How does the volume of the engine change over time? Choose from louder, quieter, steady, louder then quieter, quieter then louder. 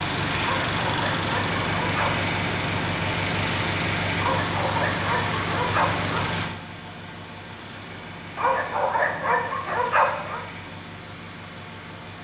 quieter.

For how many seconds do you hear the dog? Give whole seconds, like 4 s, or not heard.
6 s.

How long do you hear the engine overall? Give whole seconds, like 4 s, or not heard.
12 s.